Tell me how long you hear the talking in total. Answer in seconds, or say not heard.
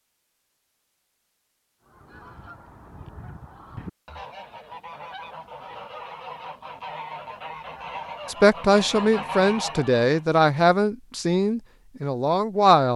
5 s.